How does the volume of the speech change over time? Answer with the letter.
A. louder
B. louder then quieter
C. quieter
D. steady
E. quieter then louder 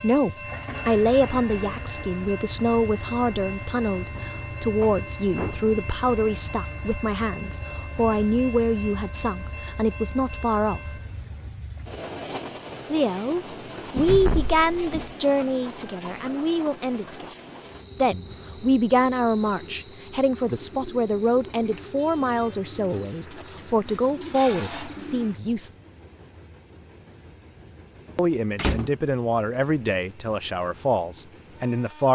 D.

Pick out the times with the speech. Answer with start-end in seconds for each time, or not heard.
0.0-10.8, 12.9-17.2, 17.9-25.7, 28.1-32.1.